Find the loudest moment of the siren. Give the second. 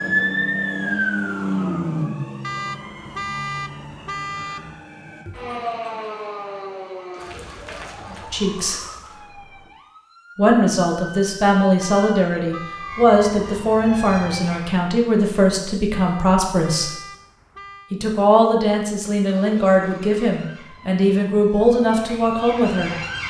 1 s.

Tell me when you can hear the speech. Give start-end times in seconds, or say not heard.
8.3-8.8, 10.3-16.9, 17.9-22.9.